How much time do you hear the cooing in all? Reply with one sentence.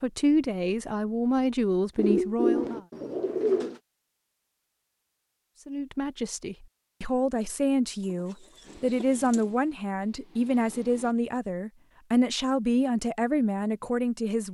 You can hear the cooing for 3 seconds altogether.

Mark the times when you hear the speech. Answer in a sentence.
The speech can be heard from 0.0 to 2.8 s and from 5.7 to 14.5 s.